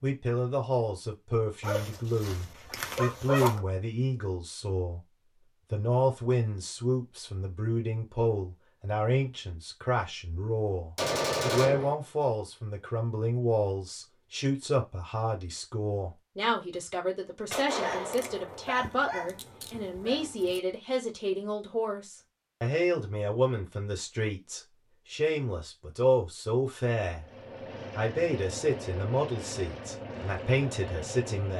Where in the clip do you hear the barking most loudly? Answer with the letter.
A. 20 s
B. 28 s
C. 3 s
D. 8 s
C.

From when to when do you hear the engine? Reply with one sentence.
The engine can be heard from 27.1 to 31.5 s.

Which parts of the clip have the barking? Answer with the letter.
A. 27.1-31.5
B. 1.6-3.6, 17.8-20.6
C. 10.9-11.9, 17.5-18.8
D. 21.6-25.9
B.